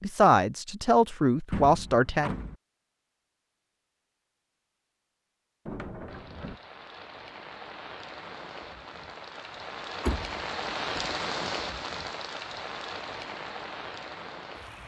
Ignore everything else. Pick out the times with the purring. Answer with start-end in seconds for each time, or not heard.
not heard.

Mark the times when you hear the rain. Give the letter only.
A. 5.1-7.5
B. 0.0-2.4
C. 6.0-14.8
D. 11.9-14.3
C.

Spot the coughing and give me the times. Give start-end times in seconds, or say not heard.
not heard.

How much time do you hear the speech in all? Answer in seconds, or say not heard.
2 s.